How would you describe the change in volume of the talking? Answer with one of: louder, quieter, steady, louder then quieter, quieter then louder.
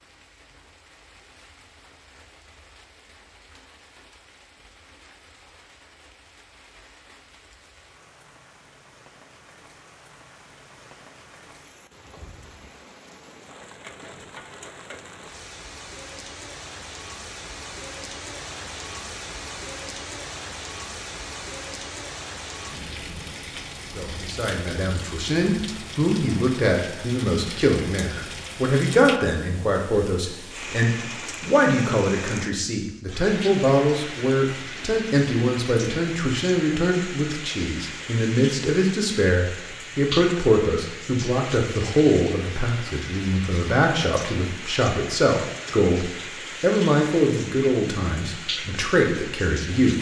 steady.